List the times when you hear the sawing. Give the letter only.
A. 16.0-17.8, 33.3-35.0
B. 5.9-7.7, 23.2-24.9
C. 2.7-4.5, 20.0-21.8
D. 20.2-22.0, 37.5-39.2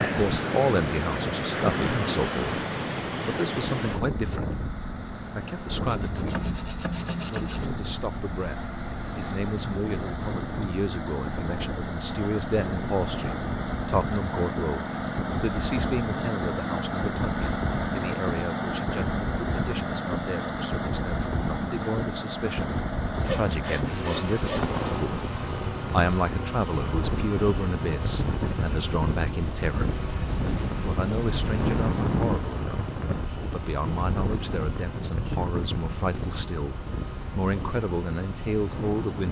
B.